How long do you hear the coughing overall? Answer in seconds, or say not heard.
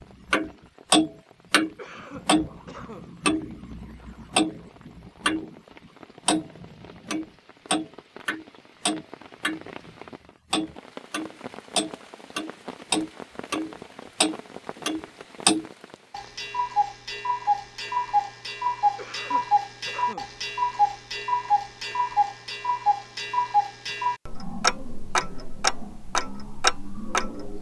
3 s.